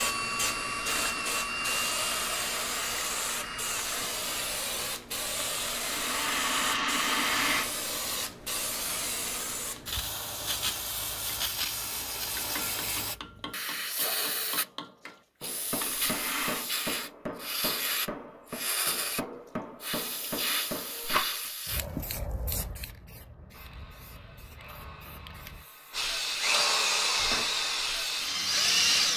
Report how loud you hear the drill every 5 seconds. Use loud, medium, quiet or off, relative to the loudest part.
medium, off, off, off, quiet, loud.